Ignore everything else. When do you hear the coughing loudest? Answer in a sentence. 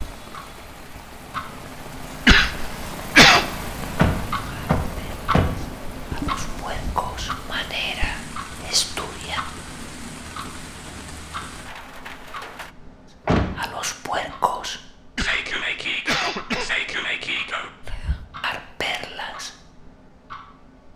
The loudest moment of the coughing is at 3 seconds.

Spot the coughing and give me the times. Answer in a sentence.
The coughing can be heard from 2.2 to 3.5 s and from 15.2 to 16.8 s.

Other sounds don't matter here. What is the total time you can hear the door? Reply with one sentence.
The door can be heard for 2 seconds in total.